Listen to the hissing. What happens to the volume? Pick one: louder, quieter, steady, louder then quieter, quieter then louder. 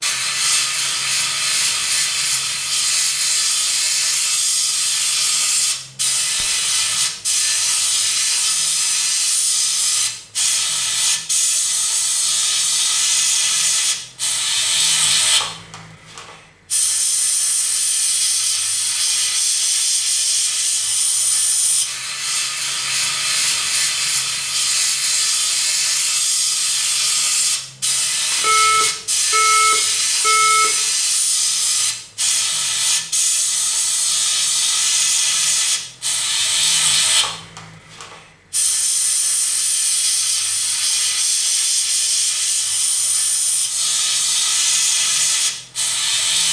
steady.